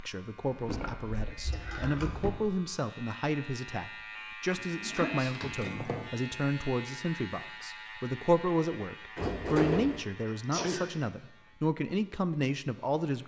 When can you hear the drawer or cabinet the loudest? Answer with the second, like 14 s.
10 s.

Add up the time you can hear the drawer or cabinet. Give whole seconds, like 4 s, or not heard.
4 s.